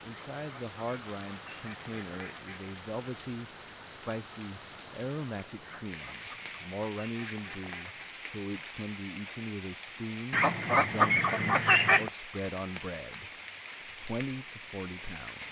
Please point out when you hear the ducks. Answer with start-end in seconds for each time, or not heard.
0.1-2.6, 5.6-8.1, 10.3-12.1.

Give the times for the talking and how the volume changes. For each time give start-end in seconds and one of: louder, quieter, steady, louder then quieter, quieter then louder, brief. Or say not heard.
0.0-15.4 steady.